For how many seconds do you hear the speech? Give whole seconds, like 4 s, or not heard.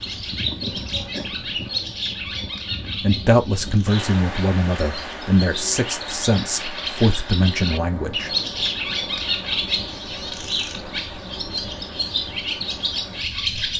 5 s.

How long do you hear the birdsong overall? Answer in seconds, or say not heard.
14 s.